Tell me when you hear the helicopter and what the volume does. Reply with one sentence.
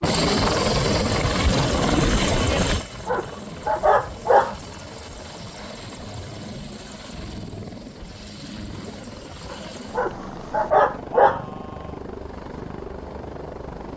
The helicopter can be heard from 0.0 to 13.9 s, getting quieter.